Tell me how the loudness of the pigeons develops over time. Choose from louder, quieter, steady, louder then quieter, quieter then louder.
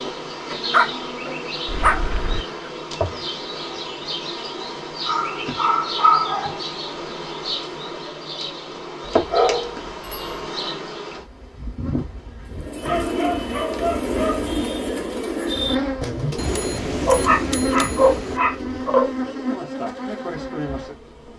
quieter.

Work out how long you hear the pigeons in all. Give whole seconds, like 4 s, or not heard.
7 s.